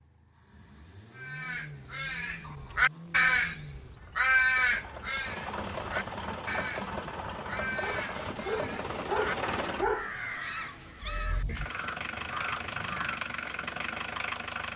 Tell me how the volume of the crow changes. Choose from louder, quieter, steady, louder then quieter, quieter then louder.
quieter.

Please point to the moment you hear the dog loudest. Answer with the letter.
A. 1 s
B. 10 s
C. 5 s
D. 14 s
B.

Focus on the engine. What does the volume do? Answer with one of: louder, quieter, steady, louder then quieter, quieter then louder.
louder.